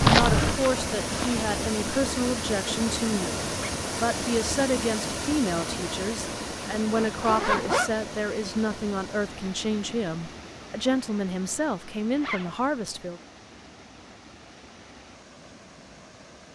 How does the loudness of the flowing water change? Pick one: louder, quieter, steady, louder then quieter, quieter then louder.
quieter.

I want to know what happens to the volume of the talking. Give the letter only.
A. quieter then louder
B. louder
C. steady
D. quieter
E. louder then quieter
C.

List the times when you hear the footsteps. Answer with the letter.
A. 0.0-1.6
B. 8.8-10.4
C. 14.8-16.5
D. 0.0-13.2
A.